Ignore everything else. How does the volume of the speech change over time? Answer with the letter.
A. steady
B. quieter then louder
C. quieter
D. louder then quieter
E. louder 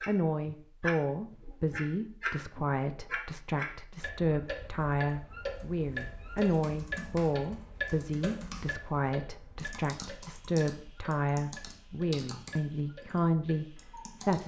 A.